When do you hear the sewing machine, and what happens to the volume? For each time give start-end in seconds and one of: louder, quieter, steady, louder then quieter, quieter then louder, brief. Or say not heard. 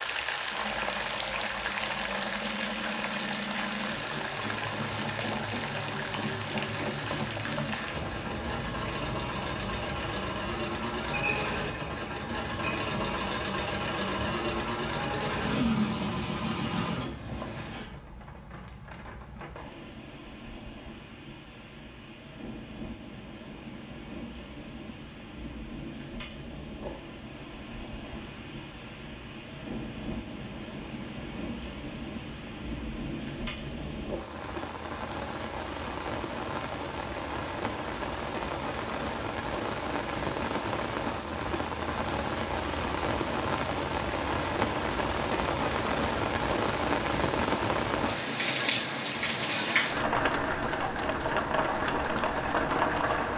0.0-17.5 louder.